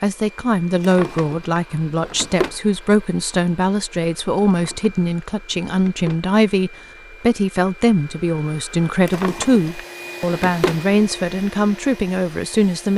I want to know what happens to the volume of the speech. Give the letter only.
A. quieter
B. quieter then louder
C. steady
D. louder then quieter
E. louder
C.